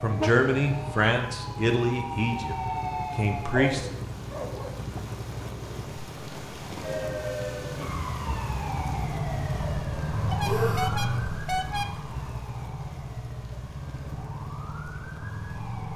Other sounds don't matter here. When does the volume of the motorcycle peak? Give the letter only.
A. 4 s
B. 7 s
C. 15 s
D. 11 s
D.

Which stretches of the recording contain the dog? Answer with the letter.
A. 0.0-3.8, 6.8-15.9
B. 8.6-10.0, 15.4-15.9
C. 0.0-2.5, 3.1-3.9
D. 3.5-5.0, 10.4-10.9
D.